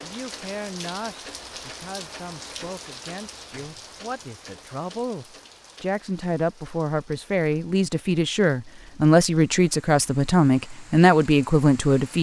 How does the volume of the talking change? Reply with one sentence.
The volume of the talking goes up.